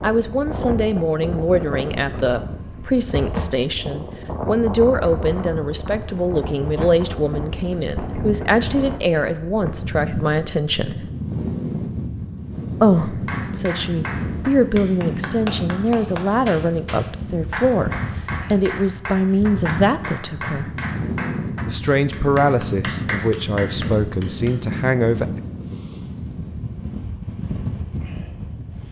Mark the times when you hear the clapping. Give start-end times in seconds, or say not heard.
12.9-24.6.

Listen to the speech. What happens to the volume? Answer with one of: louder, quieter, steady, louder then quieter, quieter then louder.
steady.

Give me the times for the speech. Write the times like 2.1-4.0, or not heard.
0.0-11.1, 12.8-20.7, 21.6-25.3.